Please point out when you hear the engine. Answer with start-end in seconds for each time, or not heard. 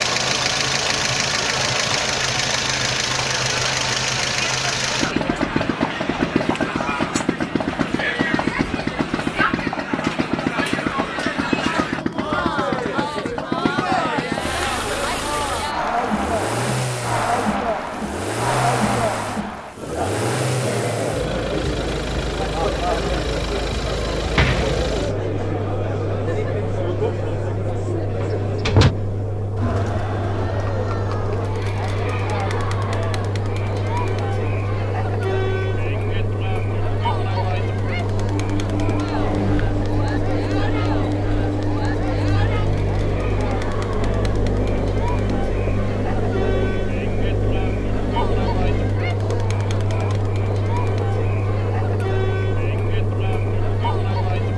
0.0-54.5.